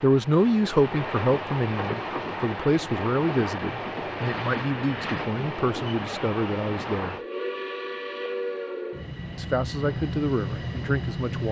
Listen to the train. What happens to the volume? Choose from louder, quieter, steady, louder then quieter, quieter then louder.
steady.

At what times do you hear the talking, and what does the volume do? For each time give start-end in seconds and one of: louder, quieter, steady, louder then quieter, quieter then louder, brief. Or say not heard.
0.0-7.2 quieter
9.3-11.4 brief.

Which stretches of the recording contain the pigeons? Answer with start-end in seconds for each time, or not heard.
not heard.